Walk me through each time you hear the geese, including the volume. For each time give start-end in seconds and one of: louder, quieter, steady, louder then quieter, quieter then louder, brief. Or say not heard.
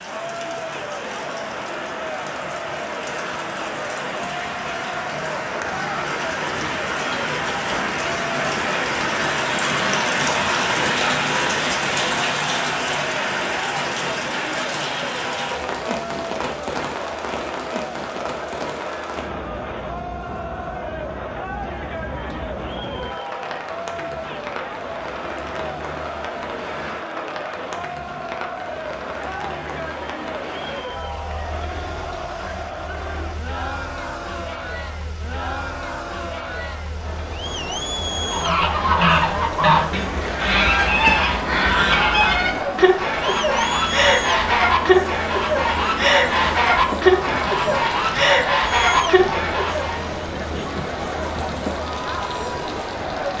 38.2-50.0 steady.